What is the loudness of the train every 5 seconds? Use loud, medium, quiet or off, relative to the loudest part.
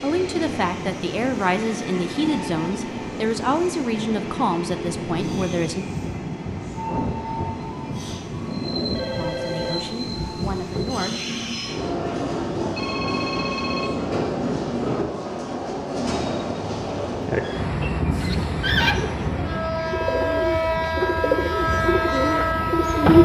medium, medium, loud, loud, loud.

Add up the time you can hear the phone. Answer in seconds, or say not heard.
2 s.